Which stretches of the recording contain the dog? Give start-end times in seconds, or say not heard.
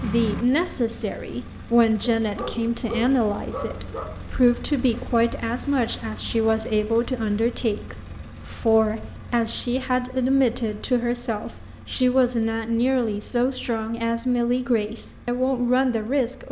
2.1-4.0.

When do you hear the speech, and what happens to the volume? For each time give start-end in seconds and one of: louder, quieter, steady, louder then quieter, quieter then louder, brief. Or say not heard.
0.0-16.4 steady.